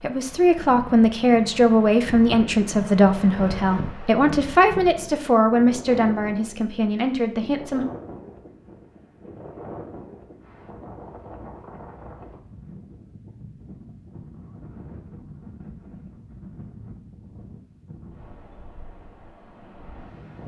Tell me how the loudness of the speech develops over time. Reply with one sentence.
The loudness of the speech goes down.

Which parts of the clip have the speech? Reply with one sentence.
The speech can be heard from 0.0 to 7.8 s.